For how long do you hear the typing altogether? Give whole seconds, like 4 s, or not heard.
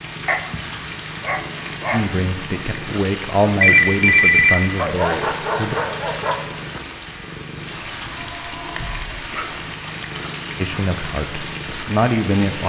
not heard.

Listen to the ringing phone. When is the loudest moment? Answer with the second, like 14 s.
4 s.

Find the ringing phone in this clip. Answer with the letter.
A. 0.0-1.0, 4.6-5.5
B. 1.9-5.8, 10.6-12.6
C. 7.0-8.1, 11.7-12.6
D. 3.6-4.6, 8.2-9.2
D.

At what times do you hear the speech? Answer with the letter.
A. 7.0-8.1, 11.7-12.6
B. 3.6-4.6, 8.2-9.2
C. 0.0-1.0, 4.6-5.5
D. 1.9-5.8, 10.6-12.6
D.